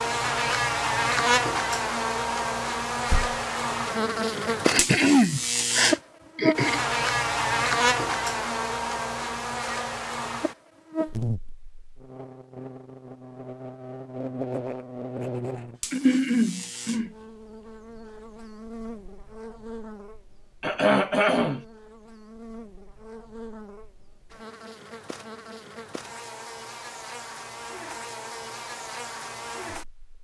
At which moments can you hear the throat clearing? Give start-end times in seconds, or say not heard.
4.7-6.8, 15.9-17.1, 20.6-21.6.